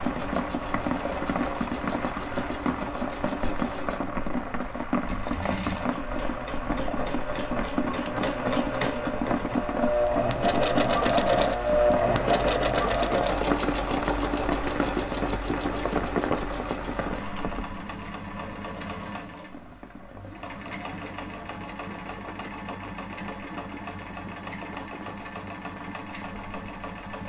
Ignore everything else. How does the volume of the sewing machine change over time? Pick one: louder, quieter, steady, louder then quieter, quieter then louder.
louder then quieter.